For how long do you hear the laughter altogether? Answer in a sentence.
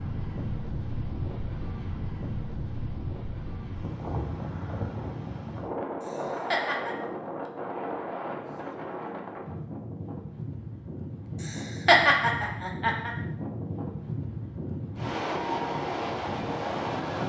The laughter can be heard for 3 seconds in total.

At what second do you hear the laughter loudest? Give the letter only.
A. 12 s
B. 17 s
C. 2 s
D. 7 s
A.